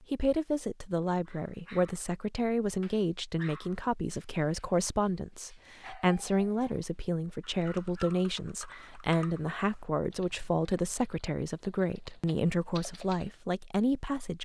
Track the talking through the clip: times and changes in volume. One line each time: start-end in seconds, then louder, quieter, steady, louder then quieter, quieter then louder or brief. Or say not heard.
0.1-14.4 steady.